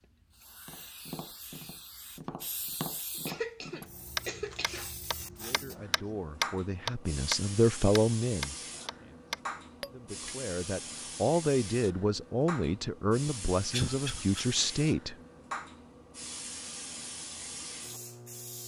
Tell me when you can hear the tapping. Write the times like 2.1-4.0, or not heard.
0.7-10.3.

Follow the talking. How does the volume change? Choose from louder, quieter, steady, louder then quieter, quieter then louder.
louder.